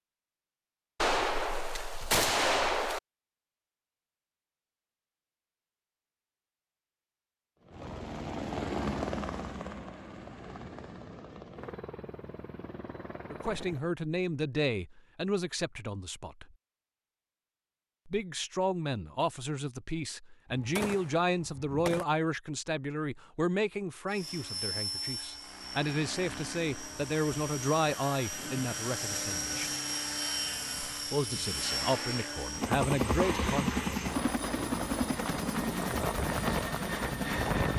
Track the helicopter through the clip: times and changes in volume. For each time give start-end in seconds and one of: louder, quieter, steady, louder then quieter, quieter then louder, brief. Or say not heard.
7.6-13.9 quieter
24.1-37.7 louder.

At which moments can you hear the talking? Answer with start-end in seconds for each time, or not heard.
13.3-16.5, 18.1-29.7, 31.1-33.7.